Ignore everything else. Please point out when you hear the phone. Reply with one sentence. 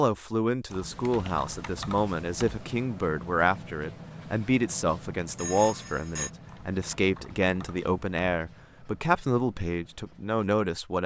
You can hear the phone from 5.3 to 6.3 s.